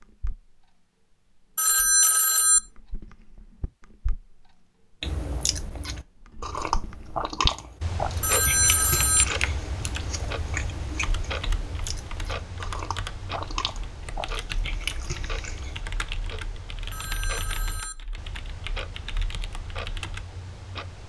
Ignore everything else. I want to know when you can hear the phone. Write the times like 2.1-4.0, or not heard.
1.6-2.6, 8.2-9.2, 16.9-17.9.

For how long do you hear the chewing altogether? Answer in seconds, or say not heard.
11 s.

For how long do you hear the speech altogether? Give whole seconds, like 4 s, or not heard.
not heard.